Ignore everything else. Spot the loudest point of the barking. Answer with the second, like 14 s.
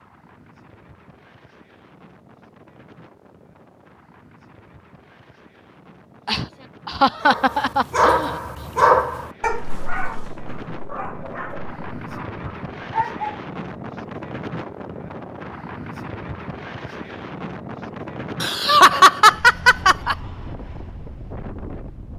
9 s.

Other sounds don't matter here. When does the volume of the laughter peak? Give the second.
19 s.